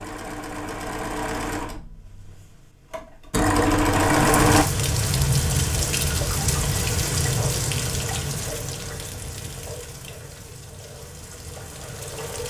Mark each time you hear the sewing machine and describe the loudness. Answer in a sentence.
The sewing machine can be heard from 0.0 to 4.7 s, getting quieter then louder.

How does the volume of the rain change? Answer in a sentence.
The loudness of the rain goes down.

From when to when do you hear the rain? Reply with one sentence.
The rain can be heard from 4.0 to 12.4 s.